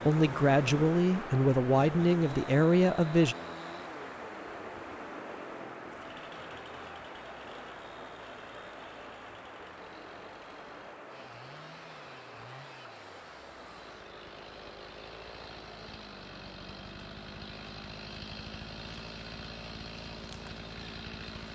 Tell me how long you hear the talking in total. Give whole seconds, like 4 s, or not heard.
3 s.